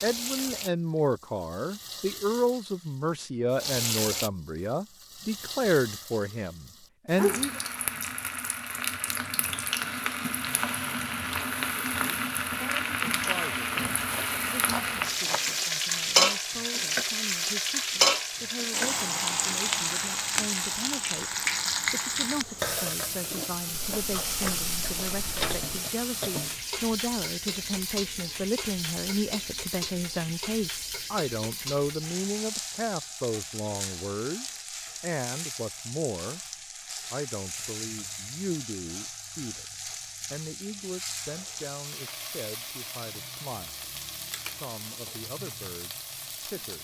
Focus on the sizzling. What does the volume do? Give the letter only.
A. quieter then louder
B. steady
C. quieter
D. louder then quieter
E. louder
D.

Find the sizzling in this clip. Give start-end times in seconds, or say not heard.
0.0-46.7.